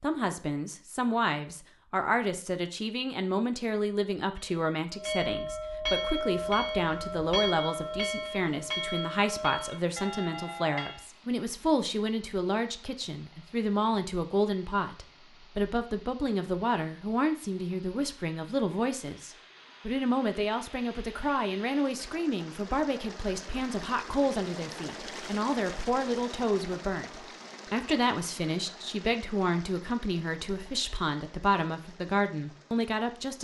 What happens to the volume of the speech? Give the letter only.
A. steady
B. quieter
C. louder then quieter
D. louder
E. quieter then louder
A.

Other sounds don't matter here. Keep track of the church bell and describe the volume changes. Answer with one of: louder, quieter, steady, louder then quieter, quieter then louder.
quieter.